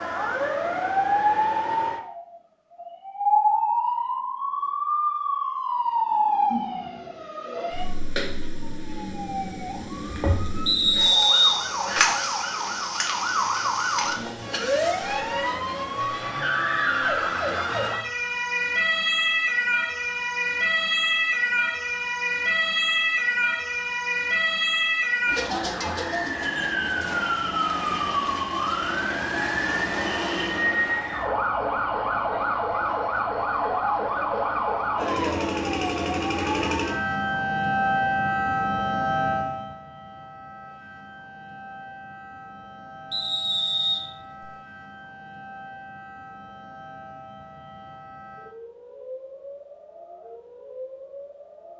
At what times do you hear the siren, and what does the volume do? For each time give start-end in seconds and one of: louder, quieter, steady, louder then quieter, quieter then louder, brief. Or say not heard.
0.0-51.7 quieter.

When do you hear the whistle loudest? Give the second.
11 s.